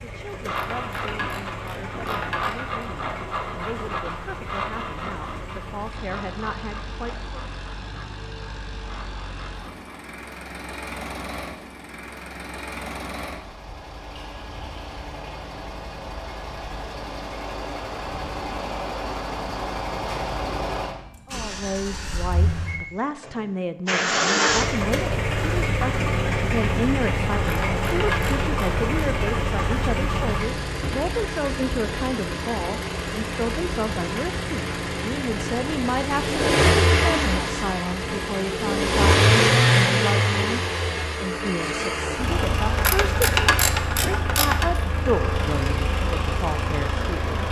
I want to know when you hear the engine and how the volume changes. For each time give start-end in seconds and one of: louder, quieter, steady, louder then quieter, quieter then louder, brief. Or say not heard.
0.0-47.4 louder.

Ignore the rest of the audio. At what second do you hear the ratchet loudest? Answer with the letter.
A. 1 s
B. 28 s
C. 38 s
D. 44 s
D.